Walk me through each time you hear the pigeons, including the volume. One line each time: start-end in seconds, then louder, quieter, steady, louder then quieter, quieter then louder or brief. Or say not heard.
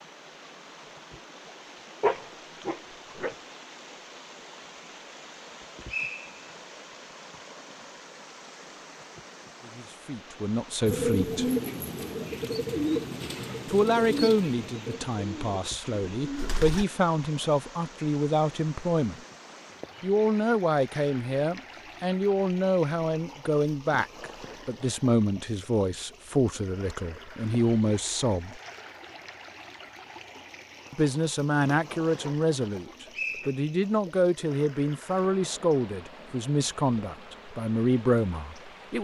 10.8-16.9 quieter.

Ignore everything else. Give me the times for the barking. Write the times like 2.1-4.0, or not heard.
2.0-3.4, 32.2-33.5.